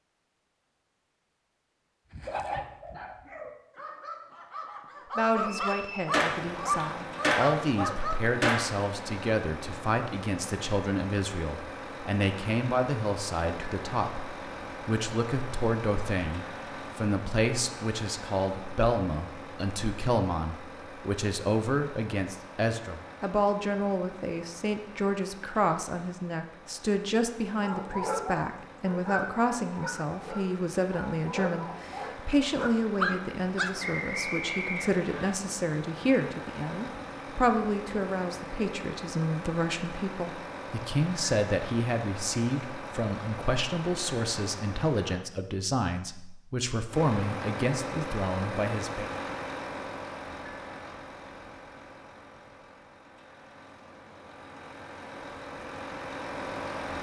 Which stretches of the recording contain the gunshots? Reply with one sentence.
You can hear the gunshots from 5.7 to 8.8 s.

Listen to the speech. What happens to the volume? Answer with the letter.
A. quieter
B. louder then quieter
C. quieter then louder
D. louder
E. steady
E.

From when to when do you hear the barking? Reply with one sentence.
You can hear the barking from 2.1 to 8.3 s and from 27.6 to 33.8 s.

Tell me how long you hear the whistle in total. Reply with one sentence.
The whistle can be heard for 2 seconds in total.